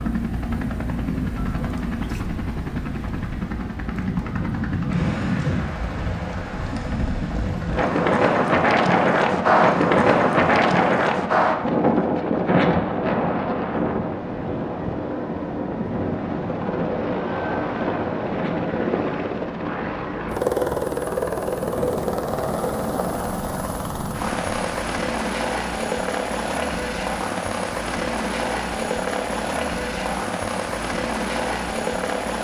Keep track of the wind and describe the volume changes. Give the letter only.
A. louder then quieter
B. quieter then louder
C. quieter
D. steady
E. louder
A.